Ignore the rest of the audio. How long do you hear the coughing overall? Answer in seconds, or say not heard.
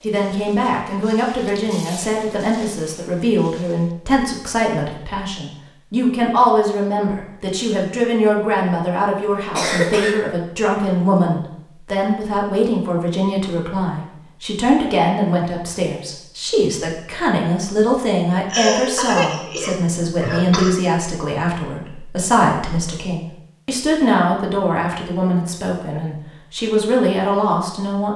3 s.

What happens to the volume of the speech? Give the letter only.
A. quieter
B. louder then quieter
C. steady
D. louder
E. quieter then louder
C.